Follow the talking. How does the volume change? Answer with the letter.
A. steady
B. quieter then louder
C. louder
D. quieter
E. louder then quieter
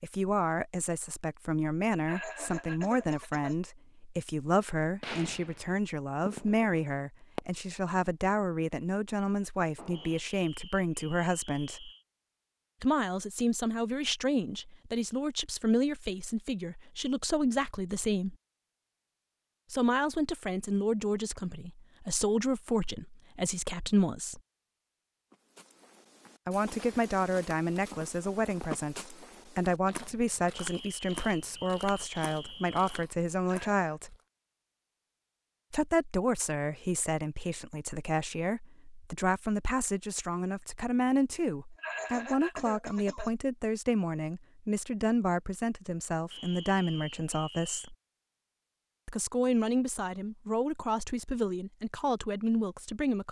A.